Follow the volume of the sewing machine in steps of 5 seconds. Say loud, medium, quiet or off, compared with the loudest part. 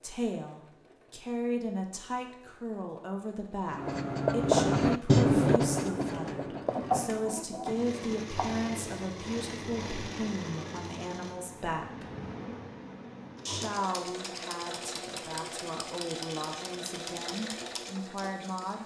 quiet, loud, loud, loud.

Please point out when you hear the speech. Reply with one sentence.
The speech can be heard from 0.0 to 12.1 s and from 13.4 to 18.8 s.